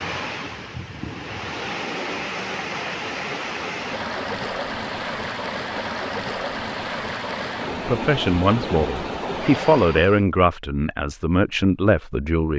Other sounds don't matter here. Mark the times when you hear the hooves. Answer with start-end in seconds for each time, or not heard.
0.0-1.6.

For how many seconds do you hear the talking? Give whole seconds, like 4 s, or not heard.
5 s.